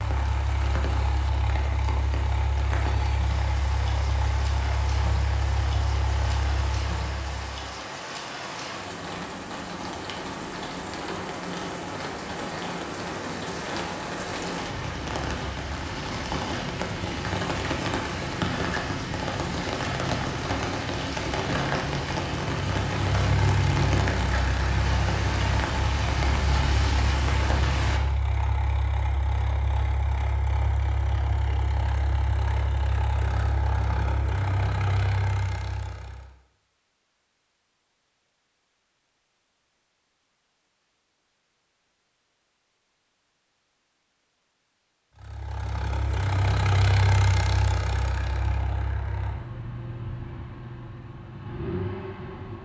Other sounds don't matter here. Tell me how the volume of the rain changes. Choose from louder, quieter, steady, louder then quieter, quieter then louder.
louder.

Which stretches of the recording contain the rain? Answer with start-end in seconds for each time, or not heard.
0.0-28.0.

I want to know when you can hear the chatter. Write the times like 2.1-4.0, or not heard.
not heard.